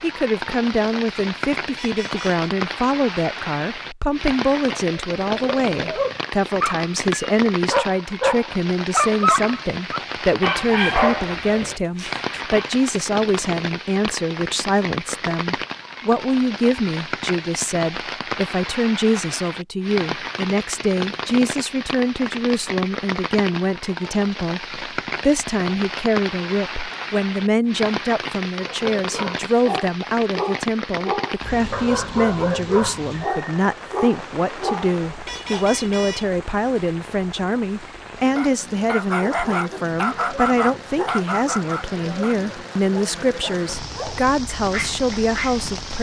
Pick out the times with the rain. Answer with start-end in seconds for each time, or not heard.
0.0-45.9.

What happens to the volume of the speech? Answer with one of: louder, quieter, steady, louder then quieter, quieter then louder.
steady.